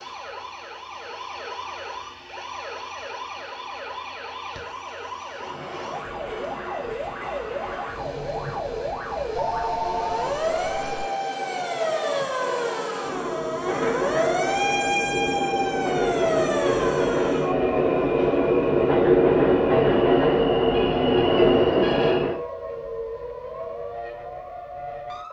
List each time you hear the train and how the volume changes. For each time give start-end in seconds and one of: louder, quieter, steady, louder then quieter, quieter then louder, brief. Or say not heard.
5.3-22.4 louder.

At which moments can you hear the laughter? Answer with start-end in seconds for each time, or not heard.
not heard.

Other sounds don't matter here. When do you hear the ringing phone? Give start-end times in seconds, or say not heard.
9.3-11.1.